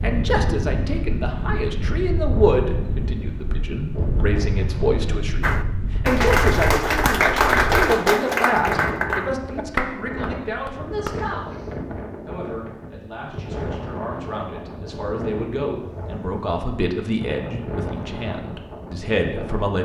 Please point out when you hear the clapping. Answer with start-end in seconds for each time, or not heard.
5.4-11.2.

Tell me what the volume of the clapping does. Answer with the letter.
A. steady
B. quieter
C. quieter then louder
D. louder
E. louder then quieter
B.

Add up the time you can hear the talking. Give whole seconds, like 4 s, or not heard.
19 s.